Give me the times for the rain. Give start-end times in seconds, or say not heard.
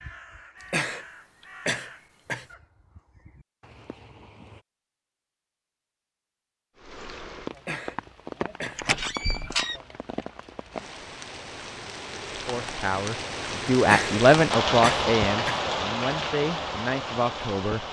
6.8-17.8.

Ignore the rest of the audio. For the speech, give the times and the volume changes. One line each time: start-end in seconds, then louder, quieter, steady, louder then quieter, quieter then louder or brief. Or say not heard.
12.4-17.8 louder then quieter.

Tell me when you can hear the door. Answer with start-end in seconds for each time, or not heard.
8.8-9.8.